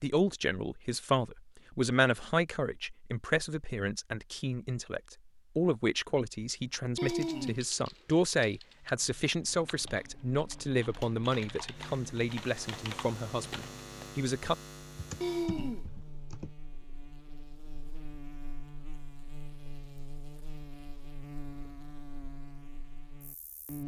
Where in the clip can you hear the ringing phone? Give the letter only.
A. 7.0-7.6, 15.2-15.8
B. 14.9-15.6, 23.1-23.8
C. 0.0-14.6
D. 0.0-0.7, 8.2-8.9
A.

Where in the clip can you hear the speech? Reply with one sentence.
The speech can be heard from 0.0 to 14.6 s.